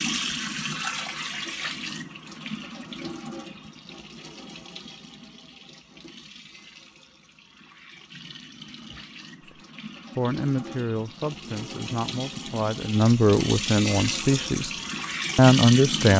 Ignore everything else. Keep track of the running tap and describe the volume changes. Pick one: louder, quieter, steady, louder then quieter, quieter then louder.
quieter then louder.